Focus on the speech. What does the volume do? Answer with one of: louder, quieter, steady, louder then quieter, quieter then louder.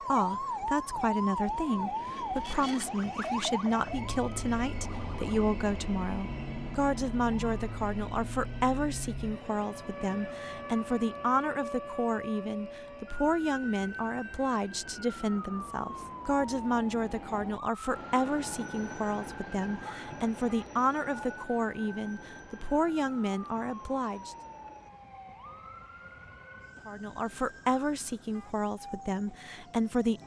steady.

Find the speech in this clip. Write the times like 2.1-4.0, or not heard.
0.1-24.4, 26.9-30.2.